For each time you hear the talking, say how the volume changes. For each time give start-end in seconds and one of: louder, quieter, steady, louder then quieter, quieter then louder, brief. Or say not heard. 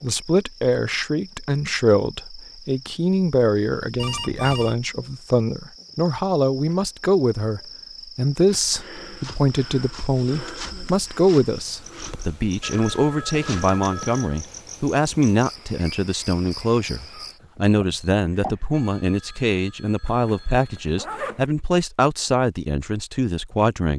0.0-23.9 steady.